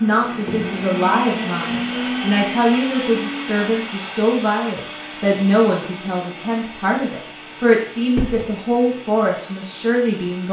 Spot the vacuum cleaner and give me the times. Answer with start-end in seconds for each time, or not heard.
0.0-10.4.